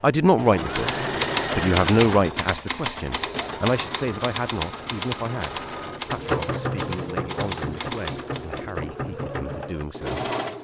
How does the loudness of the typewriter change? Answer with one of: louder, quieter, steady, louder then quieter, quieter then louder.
quieter.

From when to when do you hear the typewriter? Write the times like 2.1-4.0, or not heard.
0.7-8.7.